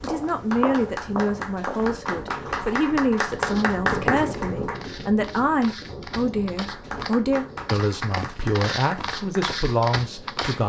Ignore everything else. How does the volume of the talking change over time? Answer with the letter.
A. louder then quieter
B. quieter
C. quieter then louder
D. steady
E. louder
D.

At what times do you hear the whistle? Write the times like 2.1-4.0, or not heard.
not heard.